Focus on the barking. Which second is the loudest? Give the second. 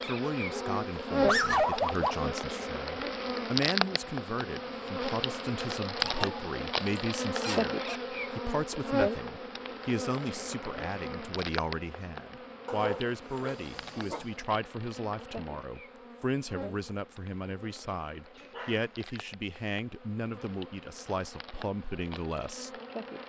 1 s.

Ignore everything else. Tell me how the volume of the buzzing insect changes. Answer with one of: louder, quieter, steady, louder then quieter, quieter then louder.
quieter.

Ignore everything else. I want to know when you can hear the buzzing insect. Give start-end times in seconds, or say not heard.
0.0-23.2.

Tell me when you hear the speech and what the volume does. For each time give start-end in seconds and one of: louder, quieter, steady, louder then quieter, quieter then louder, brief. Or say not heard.
0.0-22.8 steady.